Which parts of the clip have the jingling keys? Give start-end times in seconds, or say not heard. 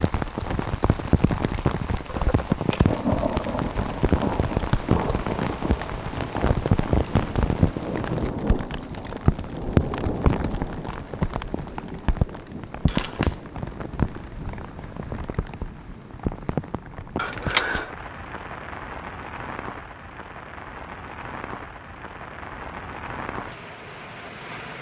2.0-3.0, 12.8-13.4, 17.1-17.9.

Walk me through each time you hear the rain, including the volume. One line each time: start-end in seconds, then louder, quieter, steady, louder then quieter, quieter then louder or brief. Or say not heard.
0.0-24.7 quieter.